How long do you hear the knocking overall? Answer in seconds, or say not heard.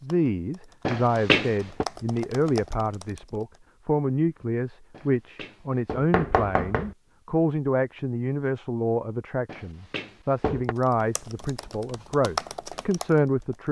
4 s.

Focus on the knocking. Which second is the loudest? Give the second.
1 s.